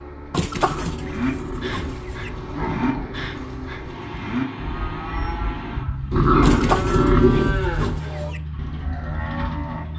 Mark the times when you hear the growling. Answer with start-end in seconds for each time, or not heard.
0.5-3.1, 6.1-8.0.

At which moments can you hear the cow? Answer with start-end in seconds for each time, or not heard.
0.9-9.9.